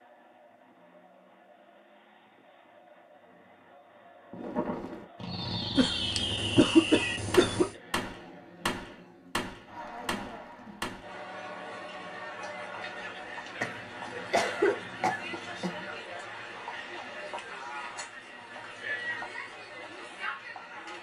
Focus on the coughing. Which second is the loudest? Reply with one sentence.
The loudest moment of the coughing is at 7 seconds.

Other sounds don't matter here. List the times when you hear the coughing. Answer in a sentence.
You can hear the coughing from 5.8 to 7.7 s and from 13.6 to 15.8 s.